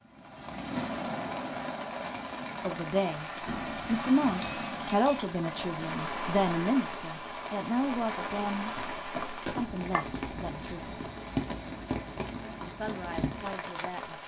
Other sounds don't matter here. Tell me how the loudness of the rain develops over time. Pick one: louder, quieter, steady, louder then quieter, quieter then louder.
steady.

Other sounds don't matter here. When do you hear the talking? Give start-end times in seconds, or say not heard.
2.6-8.7, 9.4-10.9, 12.6-14.2.